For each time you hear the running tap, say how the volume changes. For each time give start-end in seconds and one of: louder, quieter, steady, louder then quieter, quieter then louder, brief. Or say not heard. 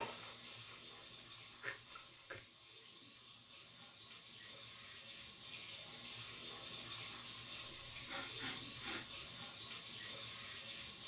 0.0-11.0 louder.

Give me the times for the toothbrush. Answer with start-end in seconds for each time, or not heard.
not heard.